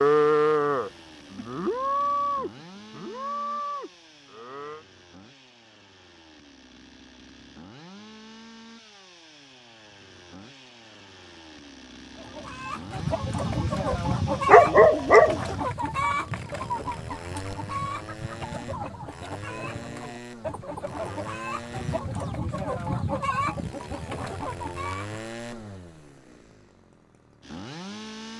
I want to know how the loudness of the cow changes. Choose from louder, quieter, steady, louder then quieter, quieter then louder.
quieter.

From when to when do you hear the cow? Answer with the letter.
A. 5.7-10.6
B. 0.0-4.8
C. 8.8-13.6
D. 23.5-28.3
B.